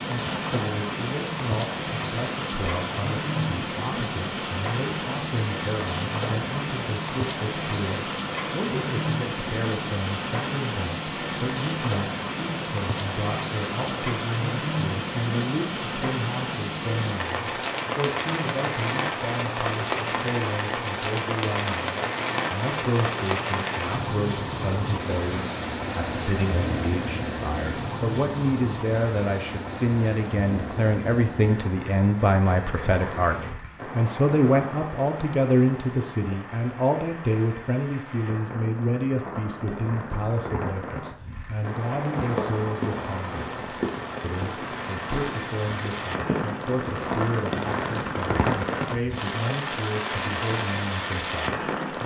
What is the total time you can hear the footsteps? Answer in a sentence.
You can hear the footsteps for 5 seconds altogether.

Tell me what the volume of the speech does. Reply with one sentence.
The volume of the speech goes up, then down.